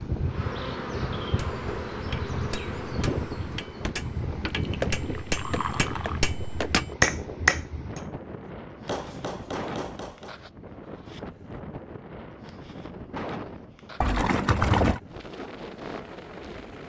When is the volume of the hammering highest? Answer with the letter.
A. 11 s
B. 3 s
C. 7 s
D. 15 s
C.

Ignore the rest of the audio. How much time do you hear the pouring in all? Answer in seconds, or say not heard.
3 s.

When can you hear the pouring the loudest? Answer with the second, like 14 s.
15 s.